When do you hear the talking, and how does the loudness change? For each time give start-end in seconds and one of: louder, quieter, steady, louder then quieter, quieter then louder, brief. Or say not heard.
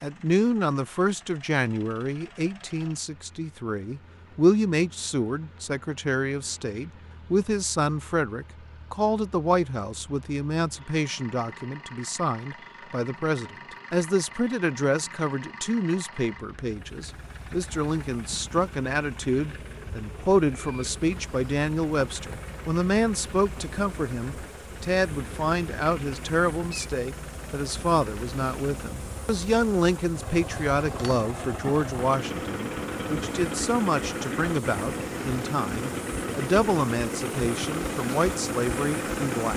0.0-39.5 steady.